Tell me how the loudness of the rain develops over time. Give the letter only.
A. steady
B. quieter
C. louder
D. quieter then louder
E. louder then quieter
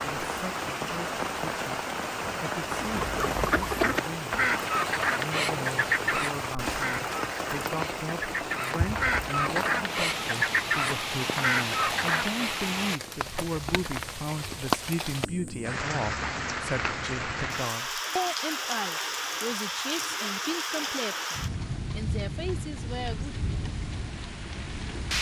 A.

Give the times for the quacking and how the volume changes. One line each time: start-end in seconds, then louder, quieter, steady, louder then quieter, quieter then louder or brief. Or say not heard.
2.8-12.6 quieter then louder.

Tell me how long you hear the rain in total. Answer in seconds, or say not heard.
25 s.